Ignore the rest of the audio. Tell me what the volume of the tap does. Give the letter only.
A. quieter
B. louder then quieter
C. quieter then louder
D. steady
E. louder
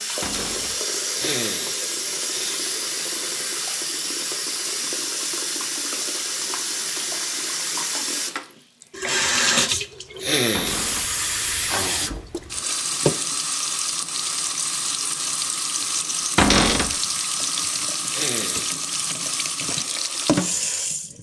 D.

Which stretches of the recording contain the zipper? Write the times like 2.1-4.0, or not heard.
not heard.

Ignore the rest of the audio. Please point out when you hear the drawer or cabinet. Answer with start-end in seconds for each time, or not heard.
0.2-0.8, 10.5-11.1, 16.4-16.9.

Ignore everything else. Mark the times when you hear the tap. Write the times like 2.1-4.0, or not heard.
0.0-21.1.